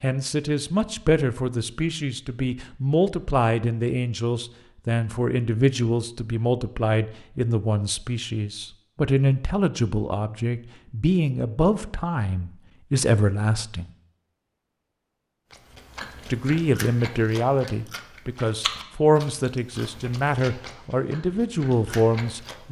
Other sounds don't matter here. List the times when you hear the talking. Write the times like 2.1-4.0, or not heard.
0.0-13.9, 16.3-22.6.